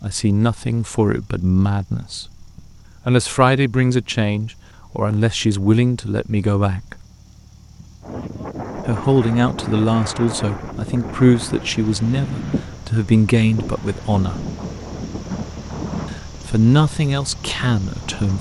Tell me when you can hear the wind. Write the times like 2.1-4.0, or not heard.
8.0-18.3.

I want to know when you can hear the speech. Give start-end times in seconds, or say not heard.
0.0-2.5, 3.0-7.0, 8.8-14.5, 16.1-18.3.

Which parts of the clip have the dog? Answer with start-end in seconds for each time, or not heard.
not heard.